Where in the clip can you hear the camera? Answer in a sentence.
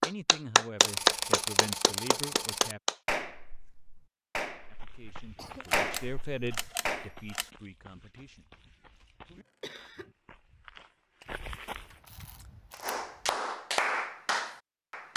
You can hear the camera from 0.8 to 2.8 s, from 5.7 to 7.5 s and from 11.7 to 13.3 s.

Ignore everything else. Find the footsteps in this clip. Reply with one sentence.
You can hear the footsteps from 4.6 to 11.9 s.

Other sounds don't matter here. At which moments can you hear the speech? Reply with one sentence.
The speech can be heard from 0.0 to 2.8 s and from 4.7 to 8.5 s.